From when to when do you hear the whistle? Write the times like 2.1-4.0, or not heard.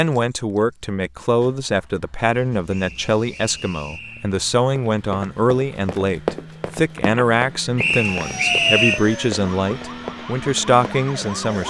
2.7-4.3, 7.8-9.0.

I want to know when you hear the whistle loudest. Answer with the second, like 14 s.
9 s.